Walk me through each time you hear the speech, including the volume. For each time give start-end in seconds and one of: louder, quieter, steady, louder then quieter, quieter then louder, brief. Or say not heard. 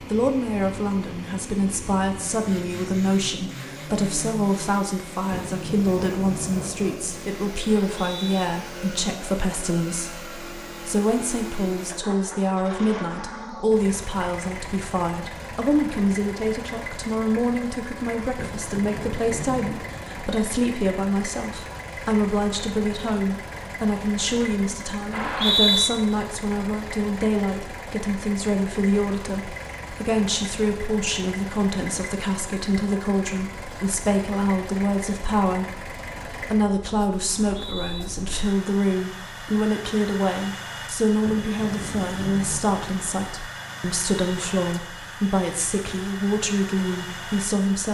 0.1-47.9 steady.